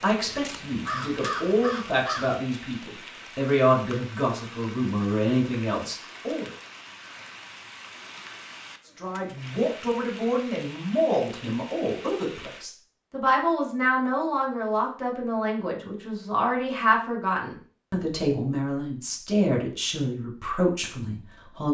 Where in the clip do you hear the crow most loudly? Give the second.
1 s.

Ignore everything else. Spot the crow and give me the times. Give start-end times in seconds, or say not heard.
0.0-2.9.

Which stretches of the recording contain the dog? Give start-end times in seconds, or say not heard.
not heard.